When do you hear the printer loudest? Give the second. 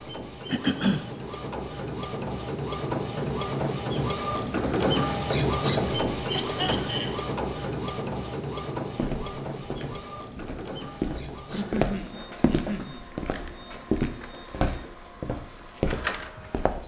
5 s.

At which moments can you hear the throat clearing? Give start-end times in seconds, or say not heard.
0.5-1.0, 6.3-7.2, 11.5-13.1.